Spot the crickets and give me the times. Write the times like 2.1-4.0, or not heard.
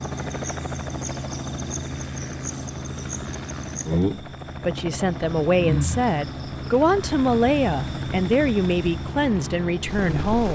0.0-10.3.